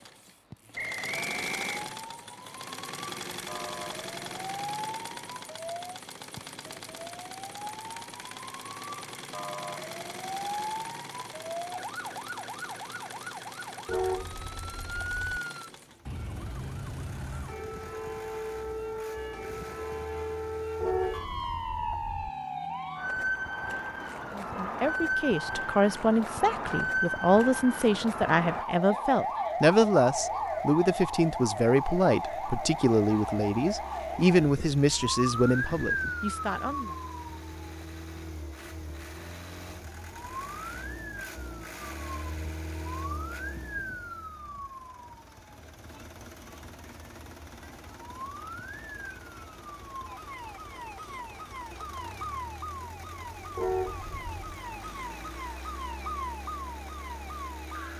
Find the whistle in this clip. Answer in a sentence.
The whistle can be heard from 0.8 to 1.9 s.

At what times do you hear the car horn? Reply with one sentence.
The car horn can be heard from 13.8 to 15.2 s, from 20.8 to 22.3 s and from 53.5 to 54.4 s.